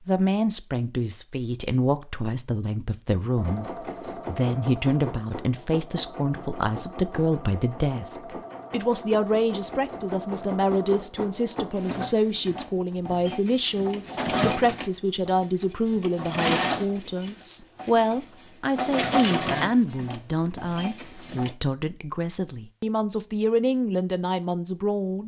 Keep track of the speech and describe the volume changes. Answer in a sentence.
The loudness of the speech stays about the same.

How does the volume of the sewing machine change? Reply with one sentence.
The volume of the sewing machine goes up.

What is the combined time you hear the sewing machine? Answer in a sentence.
You can hear the sewing machine for 18 seconds altogether.